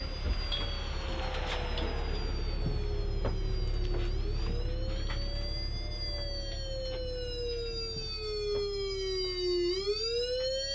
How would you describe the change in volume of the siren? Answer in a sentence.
The volume of the siren goes up.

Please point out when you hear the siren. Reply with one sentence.
The siren can be heard from 0.0 to 10.6 s.